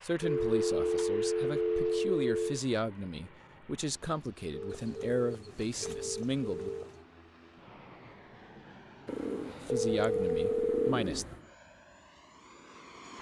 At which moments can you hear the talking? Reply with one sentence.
The talking can be heard from 0.0 to 6.7 s and from 9.7 to 11.2 s.